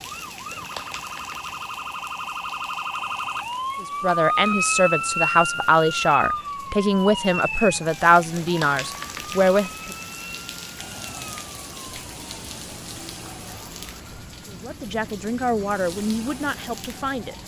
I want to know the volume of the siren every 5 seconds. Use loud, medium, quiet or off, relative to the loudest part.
loud, loud, quiet, quiet.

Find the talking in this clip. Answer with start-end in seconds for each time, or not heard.
3.8-9.9, 14.4-17.4.